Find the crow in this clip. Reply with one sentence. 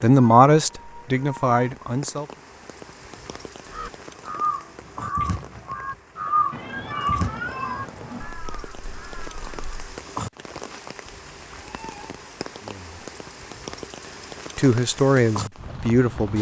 You can hear the crow from 3.7 to 9.8 s.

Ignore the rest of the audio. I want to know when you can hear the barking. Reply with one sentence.
You can't hear the barking here.